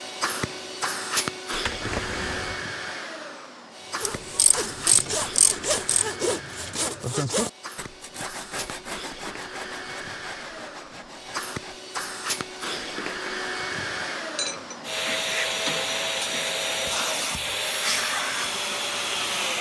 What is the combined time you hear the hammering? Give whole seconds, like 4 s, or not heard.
not heard.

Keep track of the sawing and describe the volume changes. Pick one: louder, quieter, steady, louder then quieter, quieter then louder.
quieter.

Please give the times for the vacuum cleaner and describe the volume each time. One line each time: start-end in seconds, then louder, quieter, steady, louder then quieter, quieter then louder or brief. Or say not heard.
0.0-19.5 quieter then louder.